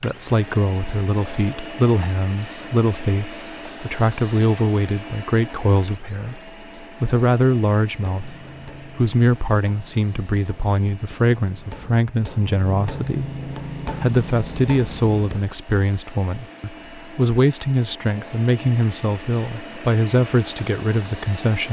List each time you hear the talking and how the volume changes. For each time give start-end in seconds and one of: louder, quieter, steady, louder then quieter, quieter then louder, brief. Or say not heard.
0.0-21.6 steady.